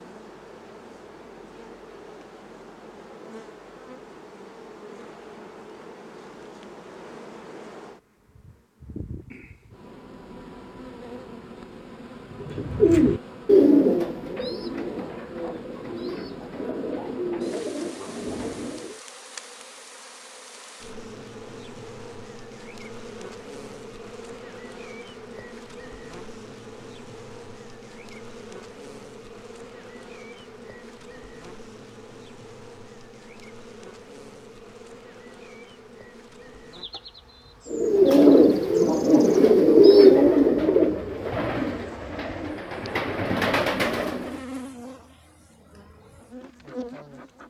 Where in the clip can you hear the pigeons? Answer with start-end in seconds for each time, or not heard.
12.3-19.0, 37.7-44.4.